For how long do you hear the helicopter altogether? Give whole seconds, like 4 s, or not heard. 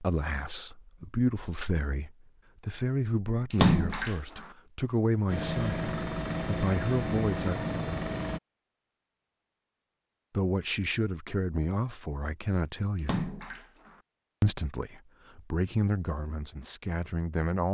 3 s.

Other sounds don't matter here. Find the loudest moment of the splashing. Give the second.
4 s.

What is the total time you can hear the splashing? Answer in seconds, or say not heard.
2 s.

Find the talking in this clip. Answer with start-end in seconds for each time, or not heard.
0.0-5.8, 6.5-7.6, 10.3-13.2, 14.4-17.6.